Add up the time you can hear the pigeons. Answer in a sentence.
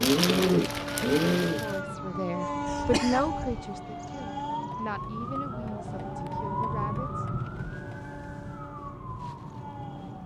The pigeons can be heard for 2 seconds in total.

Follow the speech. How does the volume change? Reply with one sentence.
The volume of the speech goes down.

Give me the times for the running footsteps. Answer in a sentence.
You can't hear the running footsteps here.